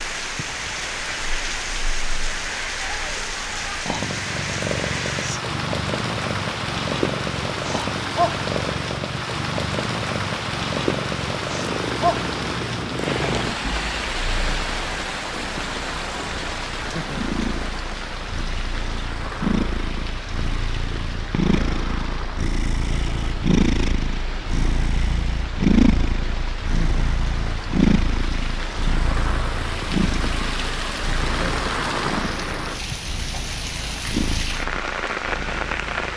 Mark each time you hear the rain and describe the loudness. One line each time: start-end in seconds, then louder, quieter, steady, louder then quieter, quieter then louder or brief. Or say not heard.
0.0-36.1 quieter then louder.